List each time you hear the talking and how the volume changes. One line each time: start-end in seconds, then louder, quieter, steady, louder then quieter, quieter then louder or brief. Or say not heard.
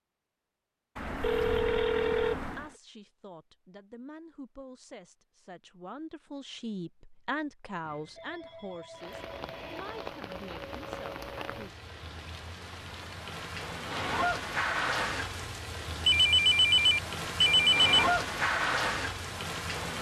2.5-11.8 louder then quieter.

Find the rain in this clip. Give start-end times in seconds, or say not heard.
8.9-19.9.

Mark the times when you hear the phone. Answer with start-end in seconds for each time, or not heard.
0.9-2.6, 7.8-10.6, 16.1-17.9.